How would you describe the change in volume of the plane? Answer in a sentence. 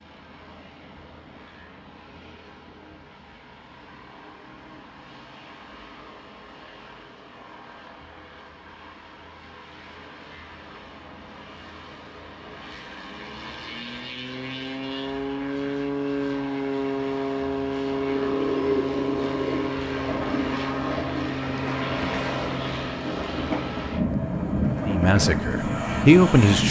The volume of the plane goes up.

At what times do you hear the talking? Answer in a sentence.
The talking can be heard from 24.9 to 26.6 s.